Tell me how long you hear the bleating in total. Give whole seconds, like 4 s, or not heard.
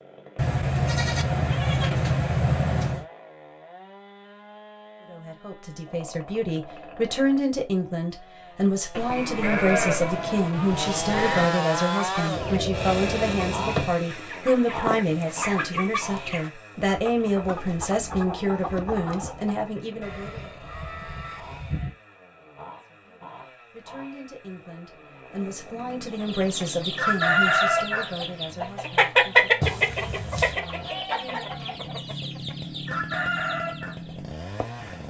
9 s.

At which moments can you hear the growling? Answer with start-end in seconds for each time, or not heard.
12.3-13.9, 29.6-30.6.